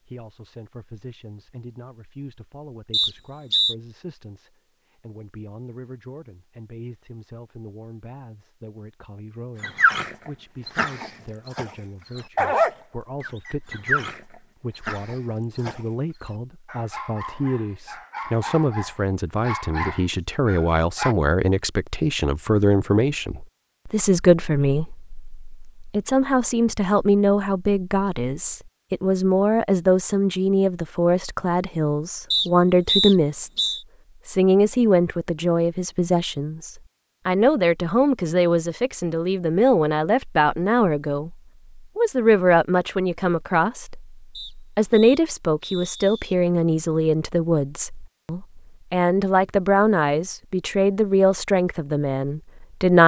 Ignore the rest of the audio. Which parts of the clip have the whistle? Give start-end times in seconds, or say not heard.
2.9-3.8, 32.3-33.8, 44.4-46.4.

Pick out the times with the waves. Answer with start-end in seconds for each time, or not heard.
not heard.